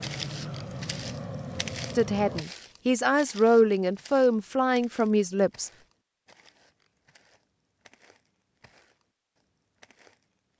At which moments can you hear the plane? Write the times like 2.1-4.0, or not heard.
0.0-2.5.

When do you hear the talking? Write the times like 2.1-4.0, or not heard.
1.9-5.7.